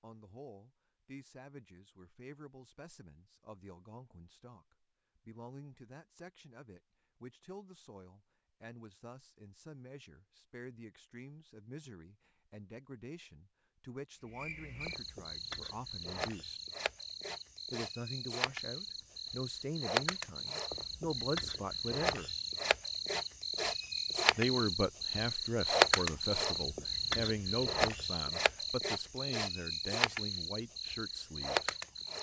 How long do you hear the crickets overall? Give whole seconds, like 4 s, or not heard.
18 s.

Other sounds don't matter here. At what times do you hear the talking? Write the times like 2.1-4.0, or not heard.
0.0-16.6, 17.7-22.3, 24.4-31.8.